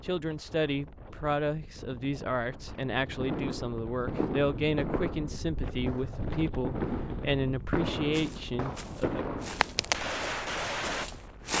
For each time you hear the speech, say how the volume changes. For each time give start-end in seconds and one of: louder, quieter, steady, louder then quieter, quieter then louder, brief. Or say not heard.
0.0-9.4 steady.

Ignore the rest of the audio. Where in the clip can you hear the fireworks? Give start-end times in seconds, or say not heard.
2.5-11.1.